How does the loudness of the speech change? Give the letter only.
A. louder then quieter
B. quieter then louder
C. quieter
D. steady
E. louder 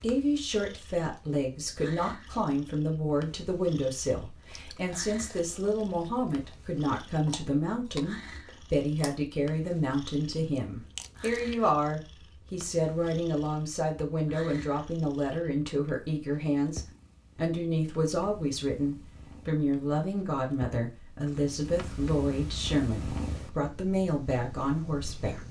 D.